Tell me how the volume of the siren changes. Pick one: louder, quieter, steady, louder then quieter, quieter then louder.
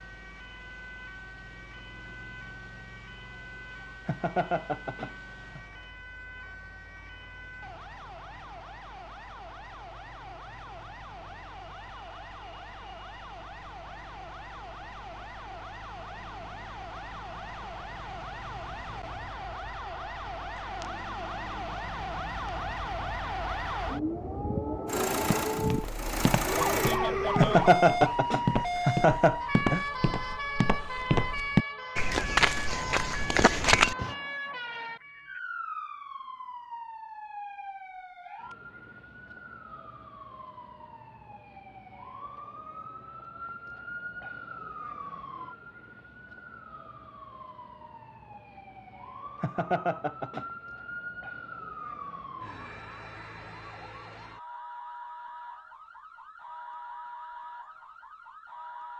louder then quieter.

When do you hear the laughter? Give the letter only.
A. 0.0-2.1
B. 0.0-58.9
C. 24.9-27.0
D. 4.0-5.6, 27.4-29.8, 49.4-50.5
D.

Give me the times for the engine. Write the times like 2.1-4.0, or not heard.
24.9-27.0.